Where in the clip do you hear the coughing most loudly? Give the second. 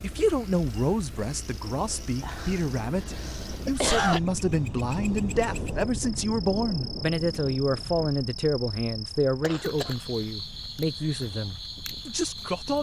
4 s.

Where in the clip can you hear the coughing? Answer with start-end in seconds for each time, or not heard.
2.2-4.2, 9.4-9.9.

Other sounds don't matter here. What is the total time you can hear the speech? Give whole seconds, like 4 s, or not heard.
13 s.